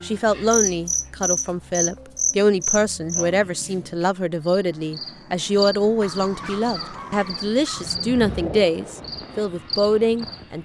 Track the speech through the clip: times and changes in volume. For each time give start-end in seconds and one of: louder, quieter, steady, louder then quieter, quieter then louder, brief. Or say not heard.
0.0-10.6 steady.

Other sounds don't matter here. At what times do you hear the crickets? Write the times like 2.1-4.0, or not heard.
0.0-10.6.